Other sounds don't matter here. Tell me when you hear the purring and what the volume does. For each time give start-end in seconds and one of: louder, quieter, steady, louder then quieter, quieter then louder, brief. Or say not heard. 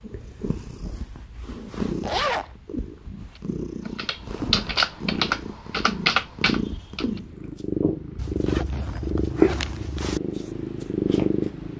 0.0-11.7 louder.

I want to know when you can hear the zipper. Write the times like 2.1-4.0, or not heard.
2.0-2.5, 8.2-10.2.